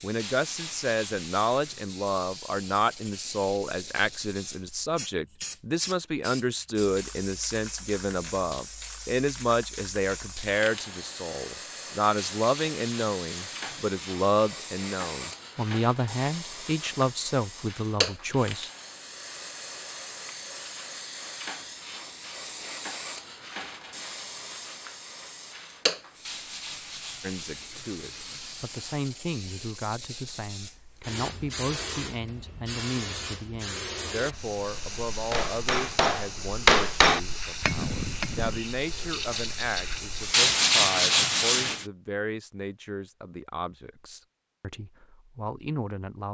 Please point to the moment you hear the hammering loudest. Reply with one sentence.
The volume of the hammering peaks at 37 seconds.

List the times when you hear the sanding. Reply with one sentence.
The sanding can be heard from 0.1 to 1.9 s, from 12.2 to 14.4 s, from 26.2 to 29.1 s and from 40.3 to 41.9 s.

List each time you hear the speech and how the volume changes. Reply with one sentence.
You can hear the speech from 0.0 to 18.7 s, at a steady volume; and from 27.2 to 46.2 s, at a steady volume.